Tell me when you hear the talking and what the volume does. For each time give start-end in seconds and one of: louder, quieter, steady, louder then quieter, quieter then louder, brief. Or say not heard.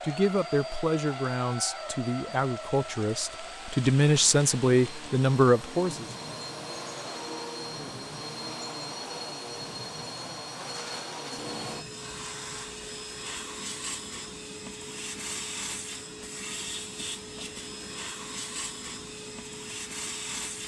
0.0-6.0 louder.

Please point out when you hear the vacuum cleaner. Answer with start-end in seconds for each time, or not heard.
0.0-20.6.